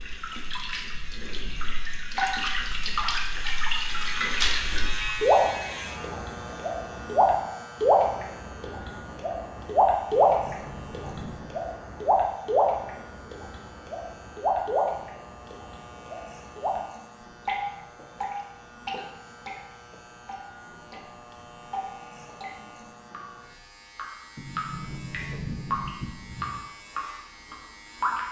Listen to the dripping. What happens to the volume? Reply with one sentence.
The loudness of the dripping goes up, then down.